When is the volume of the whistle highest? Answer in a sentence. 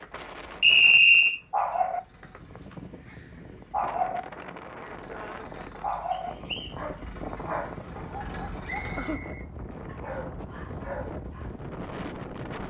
The loudest moment of the whistle is at 1 second.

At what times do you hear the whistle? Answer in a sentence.
The whistle can be heard from 0.6 to 1.4 s, from 6.1 to 6.8 s and from 8.7 to 9.4 s.